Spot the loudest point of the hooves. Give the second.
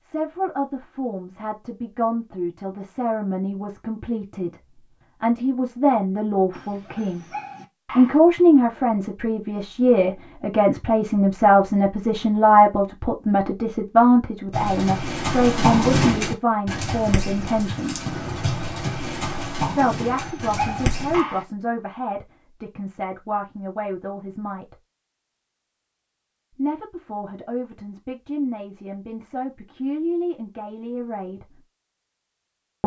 16 s.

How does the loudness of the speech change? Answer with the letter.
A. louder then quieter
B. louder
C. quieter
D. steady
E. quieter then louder
A.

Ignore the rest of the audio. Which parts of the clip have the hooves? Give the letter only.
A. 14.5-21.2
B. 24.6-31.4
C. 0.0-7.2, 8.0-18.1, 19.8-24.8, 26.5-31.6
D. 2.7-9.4
A.